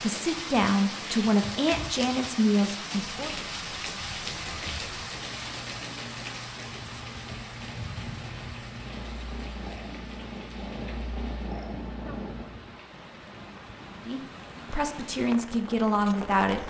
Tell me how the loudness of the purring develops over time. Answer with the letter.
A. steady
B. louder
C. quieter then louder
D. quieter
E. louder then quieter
B.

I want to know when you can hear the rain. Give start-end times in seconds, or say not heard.
0.0-16.6.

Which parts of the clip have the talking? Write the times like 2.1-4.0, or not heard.
0.0-3.3, 14.1-16.6.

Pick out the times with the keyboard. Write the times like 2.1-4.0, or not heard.
not heard.